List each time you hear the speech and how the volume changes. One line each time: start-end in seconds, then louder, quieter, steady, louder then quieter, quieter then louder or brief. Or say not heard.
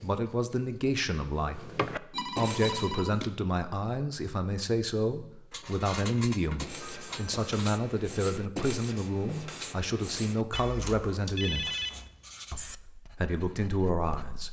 0.0-11.7 steady
12.5-14.4 brief.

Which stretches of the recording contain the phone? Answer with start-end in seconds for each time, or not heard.
2.1-3.3, 5.5-7.5, 10.5-12.2.